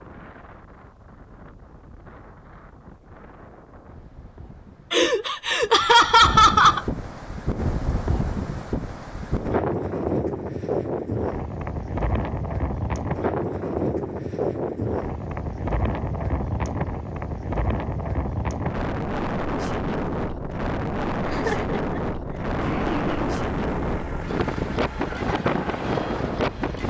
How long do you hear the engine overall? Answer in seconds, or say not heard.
4 s.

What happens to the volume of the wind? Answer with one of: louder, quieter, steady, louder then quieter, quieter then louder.
louder.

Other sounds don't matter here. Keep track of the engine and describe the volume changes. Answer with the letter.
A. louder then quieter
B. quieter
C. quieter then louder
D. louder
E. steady
C.